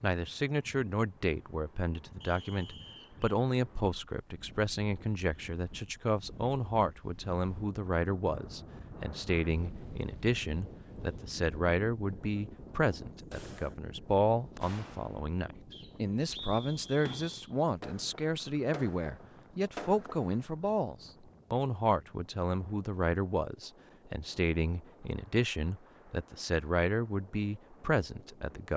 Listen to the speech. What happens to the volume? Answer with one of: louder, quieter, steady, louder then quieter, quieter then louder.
steady.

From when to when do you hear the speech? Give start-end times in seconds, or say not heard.
0.0-28.7.